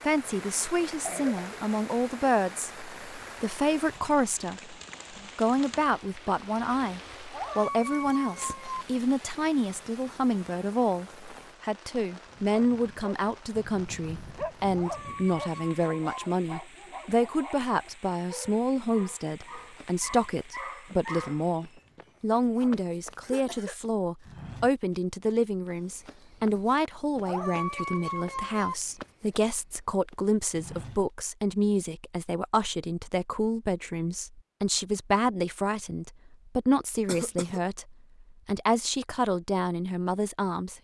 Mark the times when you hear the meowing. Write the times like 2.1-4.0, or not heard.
7.3-8.8, 14.8-16.2, 27.2-28.8.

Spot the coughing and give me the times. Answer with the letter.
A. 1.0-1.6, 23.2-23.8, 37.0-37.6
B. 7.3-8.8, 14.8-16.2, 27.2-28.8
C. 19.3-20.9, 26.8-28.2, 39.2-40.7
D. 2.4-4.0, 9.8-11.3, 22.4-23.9
A.